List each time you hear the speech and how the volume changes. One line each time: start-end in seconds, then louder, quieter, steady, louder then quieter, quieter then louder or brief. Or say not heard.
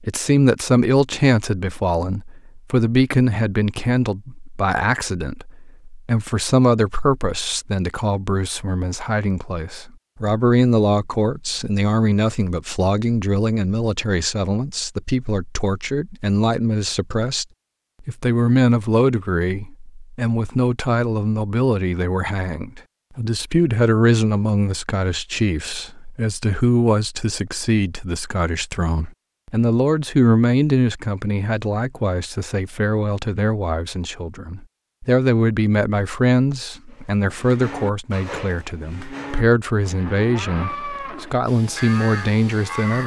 0.0-43.0 steady.